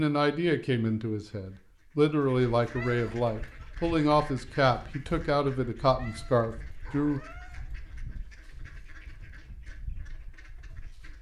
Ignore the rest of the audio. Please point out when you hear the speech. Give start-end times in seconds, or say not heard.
0.0-7.2.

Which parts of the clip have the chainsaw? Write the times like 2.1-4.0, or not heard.
not heard.